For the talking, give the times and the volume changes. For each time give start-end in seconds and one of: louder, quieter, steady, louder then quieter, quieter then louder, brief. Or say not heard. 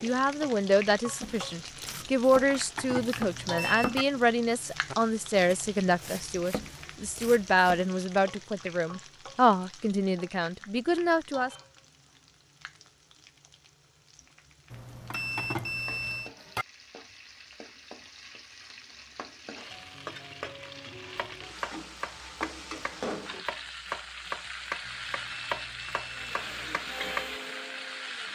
0.0-11.5 steady.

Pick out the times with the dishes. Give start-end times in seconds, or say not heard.
2.5-4.0, 15.1-16.6.